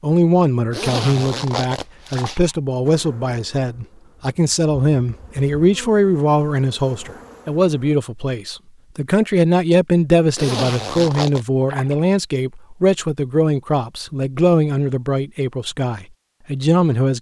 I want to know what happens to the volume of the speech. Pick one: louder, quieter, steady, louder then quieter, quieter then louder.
steady.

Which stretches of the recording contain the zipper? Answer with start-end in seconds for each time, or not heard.
0.7-2.4, 10.3-11.4.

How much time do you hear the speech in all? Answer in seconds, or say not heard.
17 s.